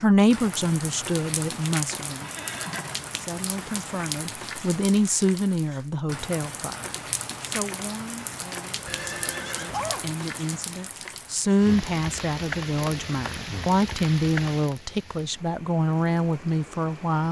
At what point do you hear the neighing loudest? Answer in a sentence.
The volume of the neighing peaks at 10 seconds.